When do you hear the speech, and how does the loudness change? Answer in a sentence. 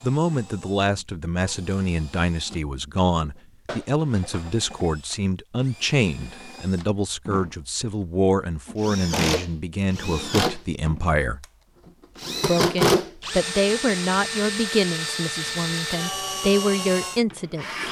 You can hear the speech from 0.0 to 11.4 s, at a steady volume; and from 12.4 to 17.6 s, getting quieter then louder.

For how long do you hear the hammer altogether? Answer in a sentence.
You can't hear the hammer here.